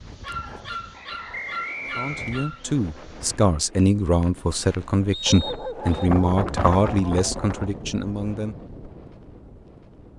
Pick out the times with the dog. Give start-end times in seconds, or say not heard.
0.2-2.6, 5.2-7.2.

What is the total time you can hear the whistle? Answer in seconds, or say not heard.
2 s.